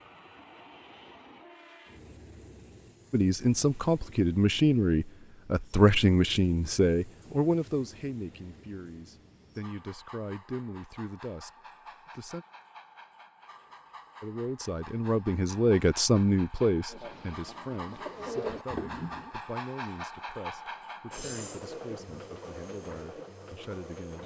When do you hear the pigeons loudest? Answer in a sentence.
The loudest moment of the pigeons is at 18 seconds.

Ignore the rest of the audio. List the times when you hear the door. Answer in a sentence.
You can't hear the door here.